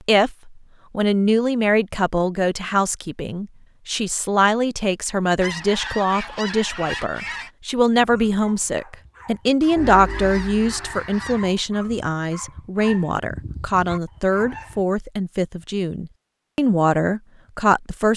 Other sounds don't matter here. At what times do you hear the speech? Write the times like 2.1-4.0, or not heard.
0.1-18.1.